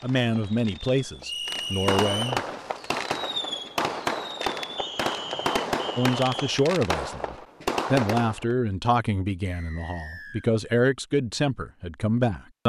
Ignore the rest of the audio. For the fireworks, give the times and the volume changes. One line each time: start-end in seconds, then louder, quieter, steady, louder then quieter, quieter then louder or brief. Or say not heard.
0.0-8.4 louder.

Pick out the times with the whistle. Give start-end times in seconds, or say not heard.
1.2-2.3, 4.8-6.7, 9.4-10.4.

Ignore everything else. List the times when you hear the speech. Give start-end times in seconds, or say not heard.
0.0-2.4, 6.0-12.6.